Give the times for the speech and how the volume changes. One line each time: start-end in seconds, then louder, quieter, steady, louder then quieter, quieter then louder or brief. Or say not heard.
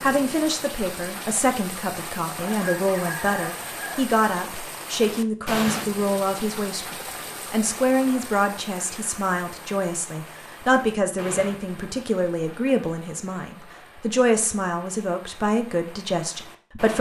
0.0-16.9 steady.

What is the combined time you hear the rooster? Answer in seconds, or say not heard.
2 s.